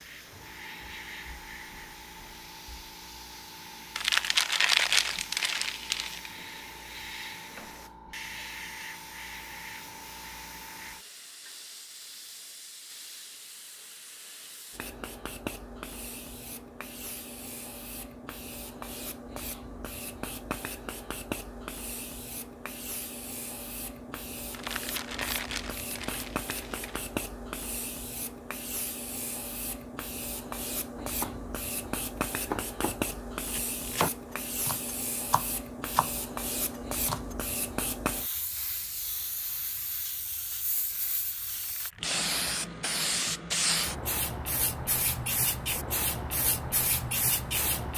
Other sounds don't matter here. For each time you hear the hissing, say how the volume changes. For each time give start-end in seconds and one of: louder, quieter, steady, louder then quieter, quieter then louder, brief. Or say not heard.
0.0-47.9 louder.